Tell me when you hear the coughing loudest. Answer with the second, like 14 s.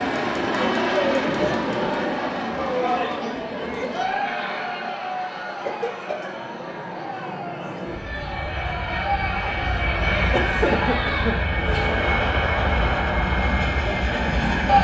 11 s.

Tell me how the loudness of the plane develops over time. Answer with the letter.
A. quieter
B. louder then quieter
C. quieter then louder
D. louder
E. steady
C.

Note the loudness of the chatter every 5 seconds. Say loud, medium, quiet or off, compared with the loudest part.
loud, medium, loud.